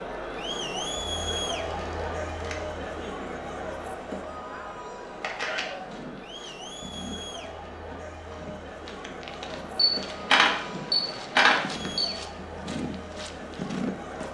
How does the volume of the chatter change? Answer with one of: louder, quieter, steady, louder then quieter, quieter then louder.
quieter.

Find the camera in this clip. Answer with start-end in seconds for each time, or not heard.
1.6-2.5, 5.2-5.7, 9.8-12.1.